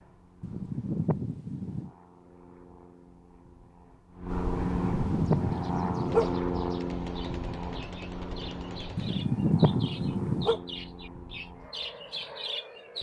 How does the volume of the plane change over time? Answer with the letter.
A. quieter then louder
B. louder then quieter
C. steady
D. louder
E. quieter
B.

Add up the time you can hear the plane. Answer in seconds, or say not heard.
13 s.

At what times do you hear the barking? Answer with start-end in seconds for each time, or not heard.
0.4-1.9, 4.7-6.3, 8.9-10.6.